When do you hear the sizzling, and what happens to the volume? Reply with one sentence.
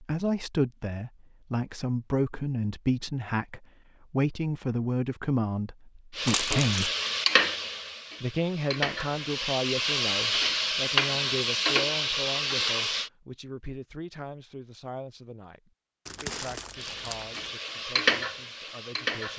You can hear the sizzling from 6.2 to 13.1 s, getting quieter then louder; and briefly from 16.8 to 19.3 s.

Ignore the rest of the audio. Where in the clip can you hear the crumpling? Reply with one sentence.
You can hear the crumpling from 6.2 to 6.9 s and from 16.1 to 17.6 s.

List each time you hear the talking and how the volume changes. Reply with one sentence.
You can hear the talking from 0.0 to 6.9 s, at a steady volume; and from 8.2 to 19.3 s, getting quieter.